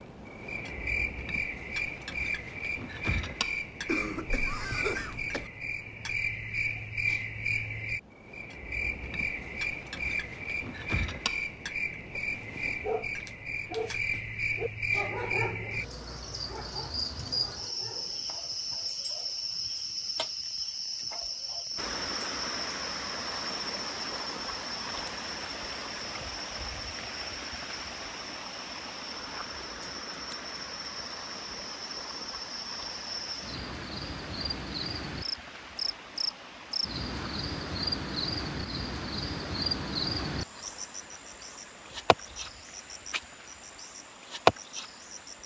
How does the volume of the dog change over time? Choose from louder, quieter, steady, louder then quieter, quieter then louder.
quieter.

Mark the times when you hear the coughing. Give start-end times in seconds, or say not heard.
3.9-5.5.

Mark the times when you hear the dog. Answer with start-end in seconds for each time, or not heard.
12.8-18.4.